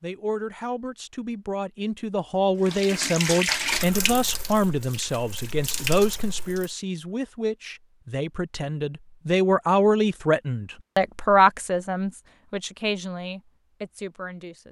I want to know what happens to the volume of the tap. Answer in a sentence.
The volume of the tap goes down, then up.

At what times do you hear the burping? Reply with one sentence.
You can't hear the burping here.